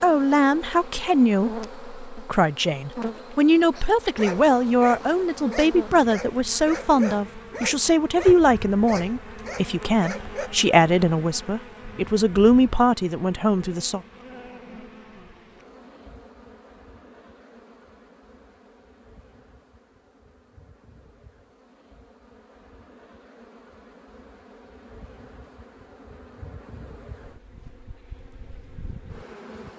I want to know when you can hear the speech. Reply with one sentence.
The speech can be heard from 0.0 to 14.0 s.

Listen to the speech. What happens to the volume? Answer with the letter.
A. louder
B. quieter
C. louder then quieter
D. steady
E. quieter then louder
D.